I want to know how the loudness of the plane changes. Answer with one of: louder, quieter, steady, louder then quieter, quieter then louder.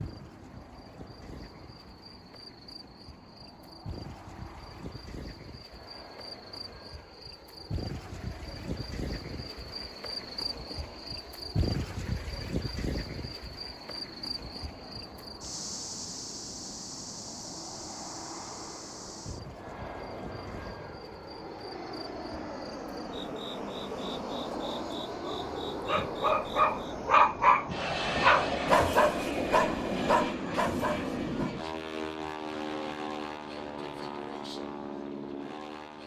louder.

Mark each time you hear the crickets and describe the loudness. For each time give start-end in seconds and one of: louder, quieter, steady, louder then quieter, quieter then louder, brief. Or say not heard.
0.0-27.1 louder then quieter.